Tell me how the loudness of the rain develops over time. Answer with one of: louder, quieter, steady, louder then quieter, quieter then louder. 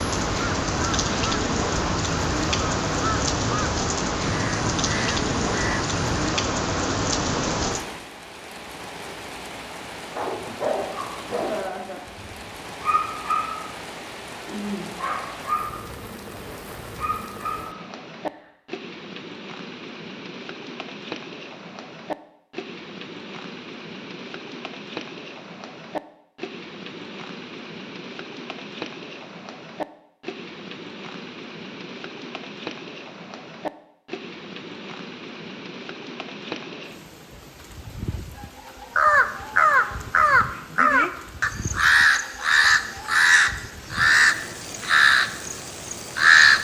quieter.